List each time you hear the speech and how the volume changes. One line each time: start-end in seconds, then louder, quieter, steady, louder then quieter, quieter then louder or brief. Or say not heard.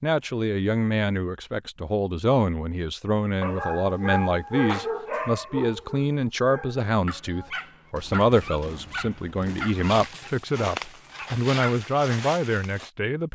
0.0-13.3 steady.